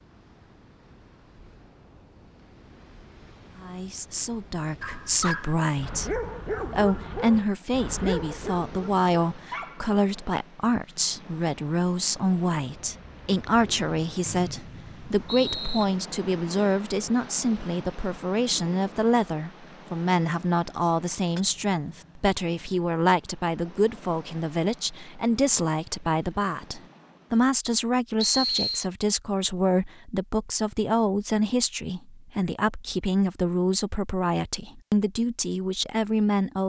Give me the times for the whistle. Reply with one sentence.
You can hear the whistle from 14.2 to 15.8 s and from 28.2 to 28.9 s.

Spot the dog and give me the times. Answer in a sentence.
You can hear the dog from 4.8 to 9.9 s.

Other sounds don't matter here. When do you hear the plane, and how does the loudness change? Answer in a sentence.
You can't hear the plane here.